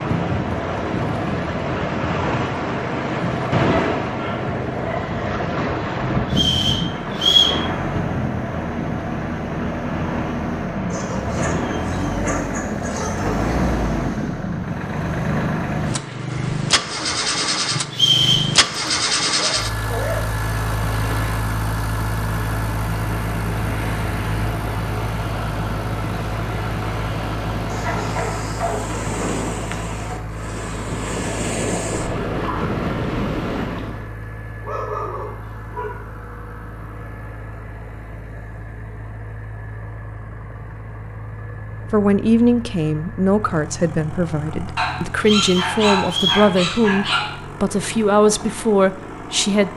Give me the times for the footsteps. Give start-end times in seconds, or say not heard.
not heard.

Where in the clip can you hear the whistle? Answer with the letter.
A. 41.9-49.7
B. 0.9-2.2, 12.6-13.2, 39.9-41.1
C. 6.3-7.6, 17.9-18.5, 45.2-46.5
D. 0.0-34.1
C.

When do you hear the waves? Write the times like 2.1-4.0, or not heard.
0.0-34.1.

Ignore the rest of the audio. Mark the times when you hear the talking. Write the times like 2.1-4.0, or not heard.
41.9-49.7.